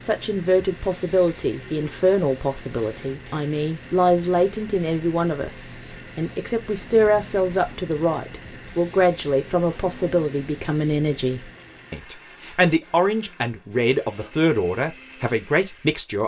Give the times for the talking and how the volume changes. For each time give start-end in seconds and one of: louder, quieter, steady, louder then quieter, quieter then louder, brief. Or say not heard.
0.0-16.2 steady.